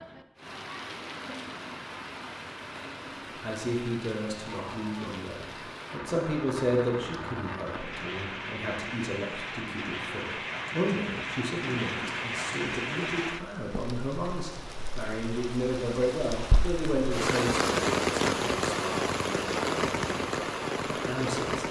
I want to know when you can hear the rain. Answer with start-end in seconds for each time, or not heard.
0.0-21.6.